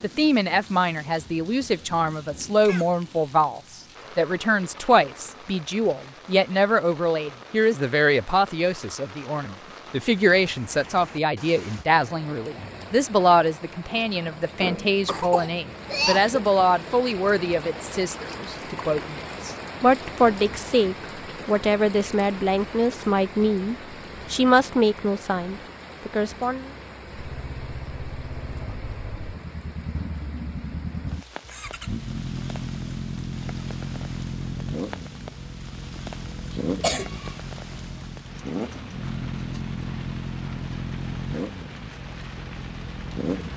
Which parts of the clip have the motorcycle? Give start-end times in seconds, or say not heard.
27.0-43.5.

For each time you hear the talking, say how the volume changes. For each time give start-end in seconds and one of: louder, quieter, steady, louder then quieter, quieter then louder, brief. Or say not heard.
0.0-26.7 steady.